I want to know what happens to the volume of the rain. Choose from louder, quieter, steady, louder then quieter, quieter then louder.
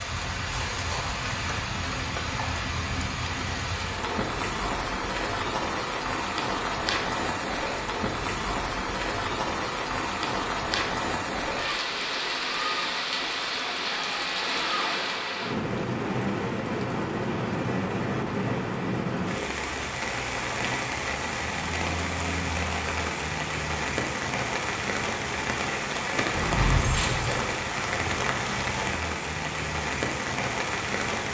steady.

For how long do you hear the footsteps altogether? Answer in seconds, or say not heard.
not heard.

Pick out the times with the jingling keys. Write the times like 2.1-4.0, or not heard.
26.4-27.5.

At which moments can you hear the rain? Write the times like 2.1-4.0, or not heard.
0.0-31.2.